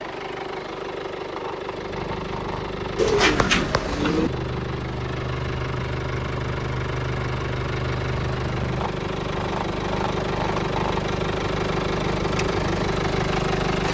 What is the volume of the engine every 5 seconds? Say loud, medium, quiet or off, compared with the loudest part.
medium, loud, loud.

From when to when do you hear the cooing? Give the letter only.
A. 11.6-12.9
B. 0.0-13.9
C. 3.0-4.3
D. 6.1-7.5
C.